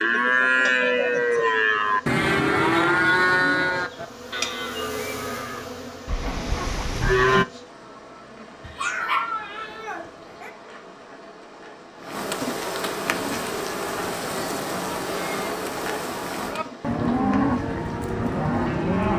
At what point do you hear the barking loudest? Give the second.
9 s.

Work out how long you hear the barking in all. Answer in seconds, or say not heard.
2 s.